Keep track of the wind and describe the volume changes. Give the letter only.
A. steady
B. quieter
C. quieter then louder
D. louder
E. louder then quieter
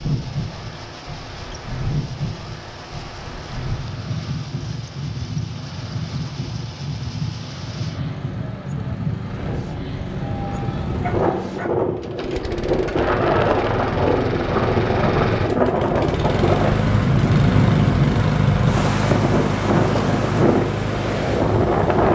D.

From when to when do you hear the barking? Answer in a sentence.
The barking can be heard from 11.0 to 11.8 s.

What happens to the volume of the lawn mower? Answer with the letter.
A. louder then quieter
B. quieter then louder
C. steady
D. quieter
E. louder
E.